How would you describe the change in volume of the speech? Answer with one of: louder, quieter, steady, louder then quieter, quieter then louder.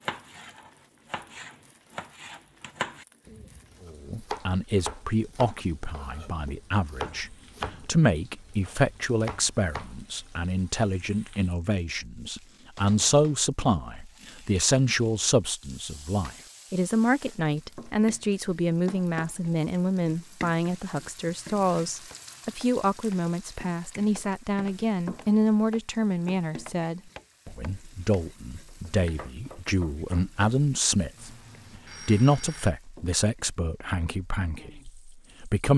steady.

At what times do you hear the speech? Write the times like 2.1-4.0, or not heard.
3.9-35.7.